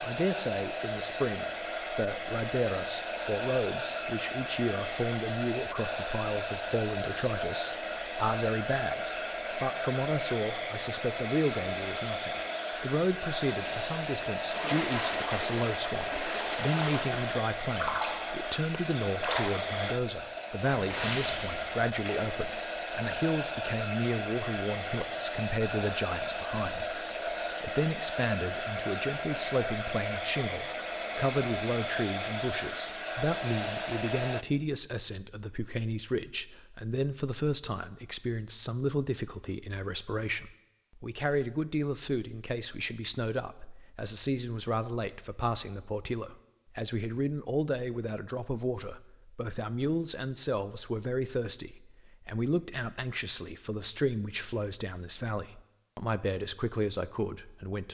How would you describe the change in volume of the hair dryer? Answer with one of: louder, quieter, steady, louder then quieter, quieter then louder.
steady.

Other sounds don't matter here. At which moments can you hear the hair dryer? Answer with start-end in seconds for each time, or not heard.
0.0-34.5.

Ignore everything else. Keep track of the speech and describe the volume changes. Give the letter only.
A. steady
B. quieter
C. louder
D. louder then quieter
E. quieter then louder
A.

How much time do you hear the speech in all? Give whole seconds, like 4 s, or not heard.
58 s.